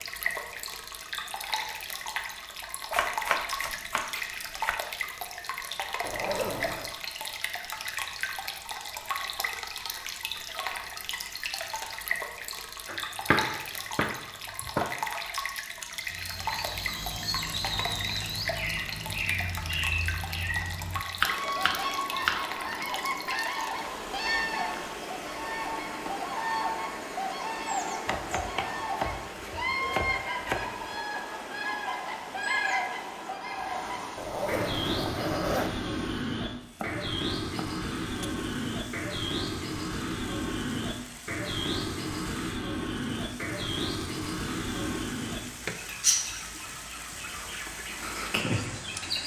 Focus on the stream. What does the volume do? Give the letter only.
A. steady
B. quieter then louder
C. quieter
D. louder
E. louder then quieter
C.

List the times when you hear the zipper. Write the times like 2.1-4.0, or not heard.
6.0-7.0, 34.1-35.8.